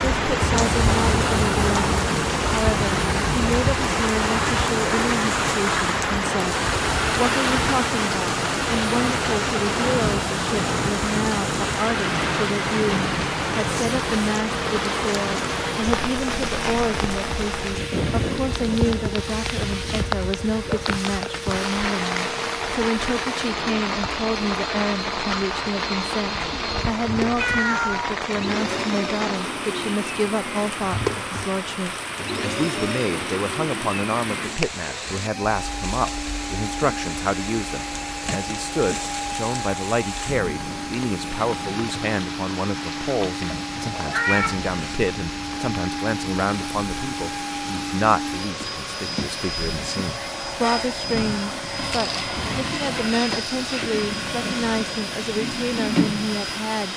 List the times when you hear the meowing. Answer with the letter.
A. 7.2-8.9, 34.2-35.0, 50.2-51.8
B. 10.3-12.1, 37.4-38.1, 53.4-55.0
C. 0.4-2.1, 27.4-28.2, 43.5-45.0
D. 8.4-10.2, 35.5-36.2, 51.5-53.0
C.